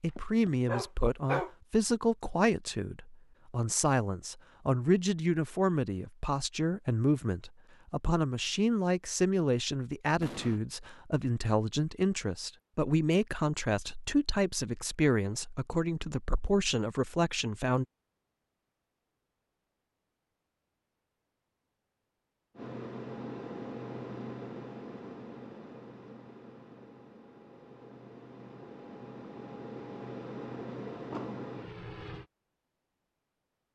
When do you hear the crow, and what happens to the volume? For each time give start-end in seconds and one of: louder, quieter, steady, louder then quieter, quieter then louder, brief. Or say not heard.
not heard.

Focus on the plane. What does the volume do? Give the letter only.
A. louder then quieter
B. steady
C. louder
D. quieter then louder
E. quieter
D.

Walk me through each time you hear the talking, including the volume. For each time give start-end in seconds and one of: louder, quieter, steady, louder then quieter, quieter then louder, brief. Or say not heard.
0.0-17.9 steady.